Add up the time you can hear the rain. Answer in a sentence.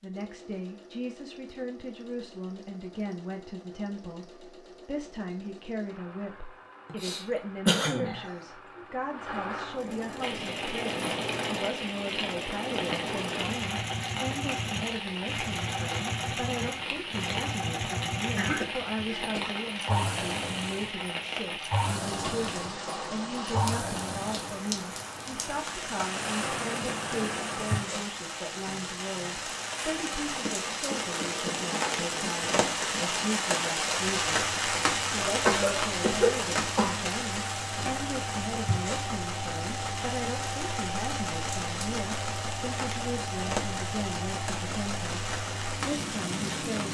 The rain can be heard for 37 seconds in total.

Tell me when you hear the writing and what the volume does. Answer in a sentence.
You can't hear the writing here.